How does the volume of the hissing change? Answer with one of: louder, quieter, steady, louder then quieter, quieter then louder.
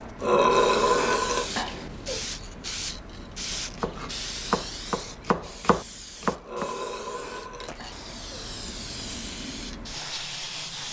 quieter then louder.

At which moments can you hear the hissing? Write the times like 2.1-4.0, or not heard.
0.0-10.8.